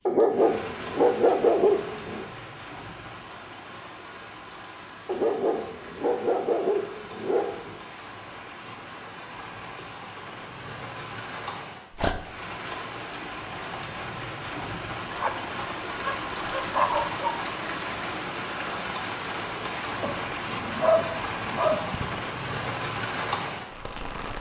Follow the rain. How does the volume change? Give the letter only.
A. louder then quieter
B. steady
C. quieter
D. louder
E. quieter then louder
D.